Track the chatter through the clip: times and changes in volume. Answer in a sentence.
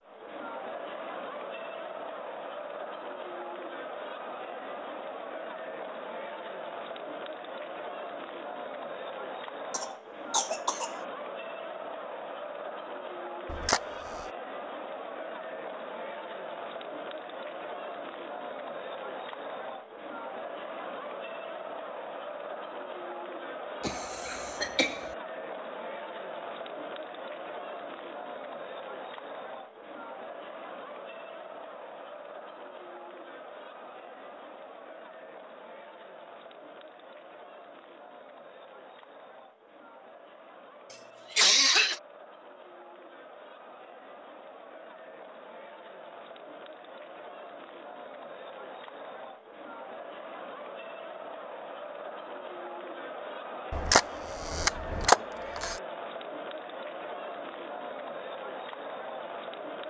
The chatter can be heard from 0.0 to 59.8 s, getting quieter then louder.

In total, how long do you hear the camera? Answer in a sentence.
The camera can be heard for 3 seconds in total.